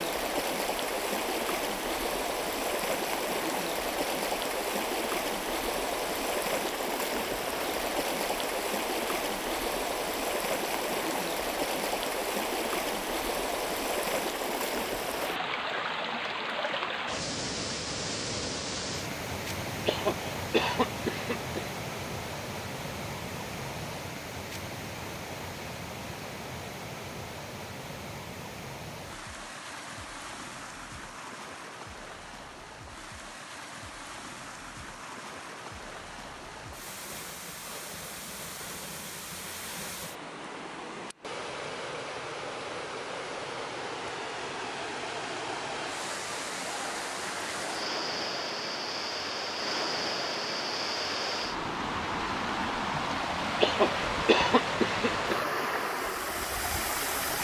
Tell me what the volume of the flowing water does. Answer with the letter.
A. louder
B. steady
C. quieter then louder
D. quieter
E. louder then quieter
C.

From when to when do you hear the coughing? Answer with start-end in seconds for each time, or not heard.
19.9-21.7, 53.6-55.5.